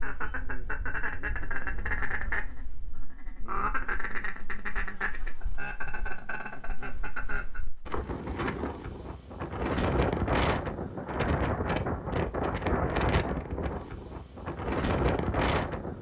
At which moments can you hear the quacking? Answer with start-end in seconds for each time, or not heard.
0.0-7.6.